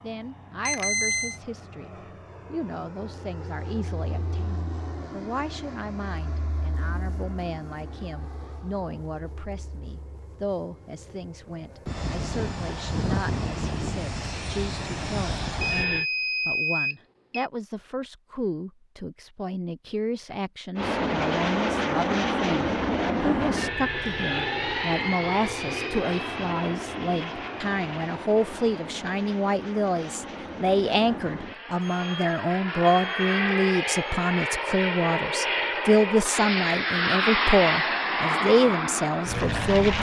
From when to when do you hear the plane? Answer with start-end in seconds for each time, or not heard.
0.0-16.1, 20.8-39.9.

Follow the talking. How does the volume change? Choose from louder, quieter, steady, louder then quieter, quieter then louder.
louder.